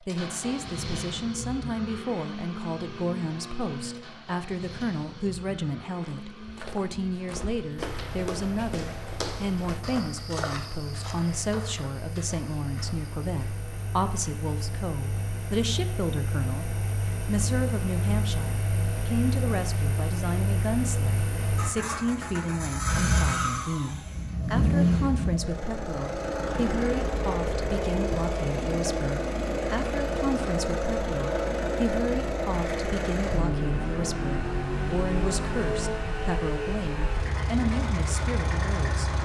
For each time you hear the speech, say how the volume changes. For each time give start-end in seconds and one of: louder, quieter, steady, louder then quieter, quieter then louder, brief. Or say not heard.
0.1-39.2 steady.